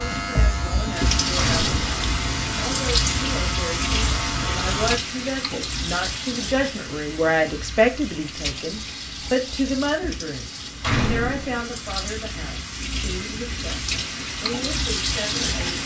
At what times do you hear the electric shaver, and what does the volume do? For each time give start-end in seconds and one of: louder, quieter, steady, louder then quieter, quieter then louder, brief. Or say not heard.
0.0-5.0 steady.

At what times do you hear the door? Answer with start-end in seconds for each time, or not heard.
1.4-2.0, 10.8-11.7.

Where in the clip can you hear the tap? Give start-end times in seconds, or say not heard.
0.0-15.8.